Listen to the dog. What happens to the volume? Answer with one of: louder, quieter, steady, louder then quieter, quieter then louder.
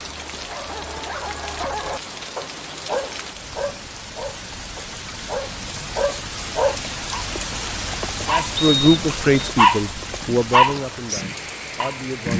louder.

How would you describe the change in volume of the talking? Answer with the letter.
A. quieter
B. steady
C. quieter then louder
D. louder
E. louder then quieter
A.